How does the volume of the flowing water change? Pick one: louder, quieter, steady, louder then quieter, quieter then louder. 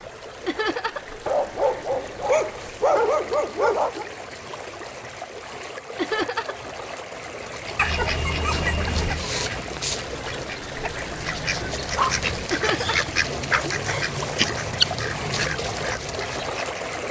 louder.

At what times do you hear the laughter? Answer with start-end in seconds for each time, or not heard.
0.5-1.1, 6.0-6.7, 12.5-13.2.